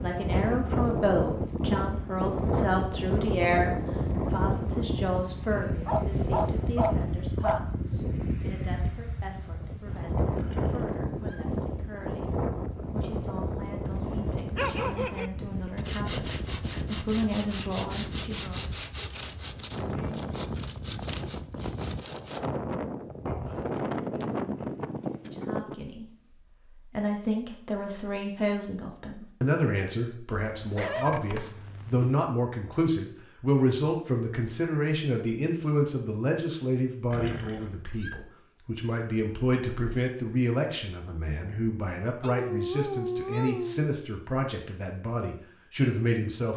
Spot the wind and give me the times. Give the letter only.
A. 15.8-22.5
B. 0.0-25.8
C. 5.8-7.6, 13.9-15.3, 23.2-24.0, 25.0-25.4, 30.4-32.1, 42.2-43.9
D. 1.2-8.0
B.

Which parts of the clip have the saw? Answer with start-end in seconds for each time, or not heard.
15.8-22.5.